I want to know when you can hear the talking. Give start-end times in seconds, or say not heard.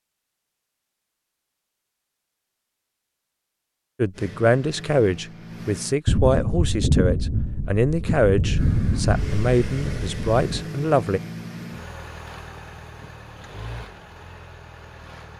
4.0-11.2.